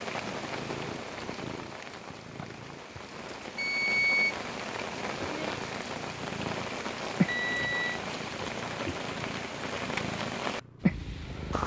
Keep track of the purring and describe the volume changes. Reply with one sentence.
The volume of the purring goes down, then up.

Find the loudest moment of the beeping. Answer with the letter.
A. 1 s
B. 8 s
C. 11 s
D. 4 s
D.